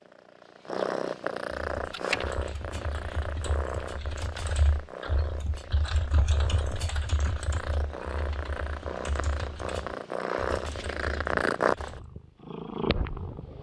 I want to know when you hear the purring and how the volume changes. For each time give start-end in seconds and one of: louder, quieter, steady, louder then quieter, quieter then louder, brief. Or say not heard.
0.0-13.5 quieter then louder.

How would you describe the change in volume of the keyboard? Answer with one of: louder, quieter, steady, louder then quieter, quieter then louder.
louder then quieter.